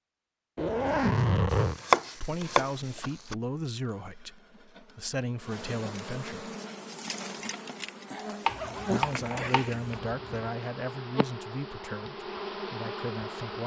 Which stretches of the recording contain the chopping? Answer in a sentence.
You can hear the chopping from 1.9 to 3.4 s and from 8.4 to 9.7 s.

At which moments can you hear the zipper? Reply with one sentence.
The zipper can be heard from 0.6 to 1.8 s and from 8.4 to 10.5 s.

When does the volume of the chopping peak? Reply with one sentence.
The volume of the chopping peaks at 2 seconds.